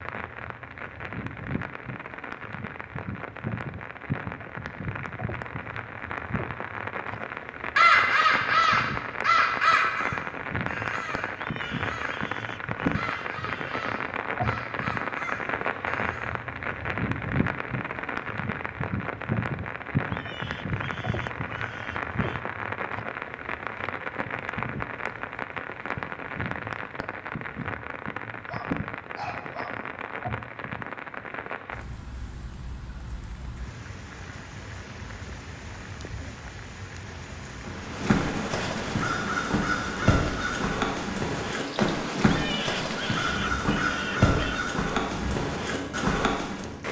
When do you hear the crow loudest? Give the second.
8 s.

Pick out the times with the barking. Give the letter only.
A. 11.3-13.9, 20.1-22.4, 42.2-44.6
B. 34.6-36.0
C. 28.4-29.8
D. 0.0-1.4
C.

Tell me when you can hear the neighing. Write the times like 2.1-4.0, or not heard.
11.3-13.9, 20.1-22.4, 42.2-44.6.